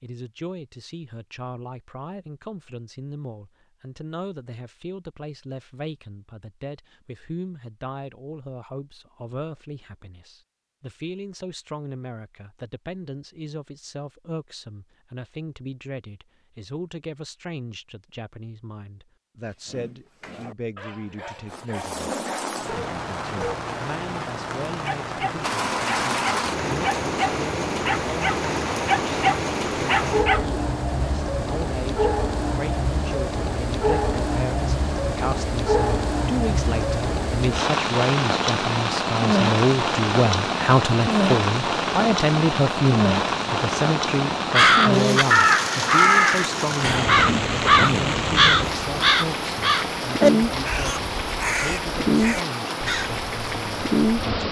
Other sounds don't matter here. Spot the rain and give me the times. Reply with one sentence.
The rain can be heard from 21.4 to 54.4 s.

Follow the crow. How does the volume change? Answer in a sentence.
The volume of the crow goes down.